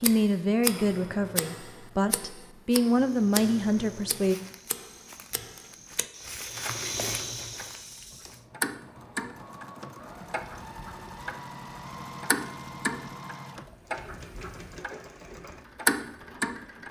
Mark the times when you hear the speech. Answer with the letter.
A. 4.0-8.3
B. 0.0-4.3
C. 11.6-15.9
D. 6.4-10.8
B.